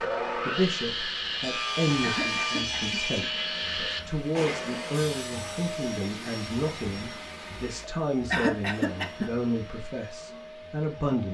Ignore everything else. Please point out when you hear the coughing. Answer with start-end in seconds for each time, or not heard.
2.0-3.0, 8.3-9.3.